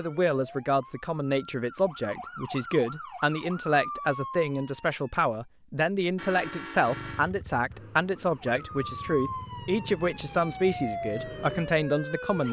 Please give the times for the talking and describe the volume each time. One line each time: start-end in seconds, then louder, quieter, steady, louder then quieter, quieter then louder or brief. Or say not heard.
0.0-12.4 steady.